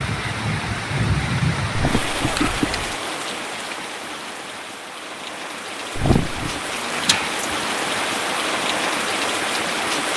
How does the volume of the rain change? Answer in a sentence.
The loudness of the rain goes down, then up.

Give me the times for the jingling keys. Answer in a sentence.
You can hear the jingling keys from 2.1 to 3.0 s and from 6.0 to 7.4 s.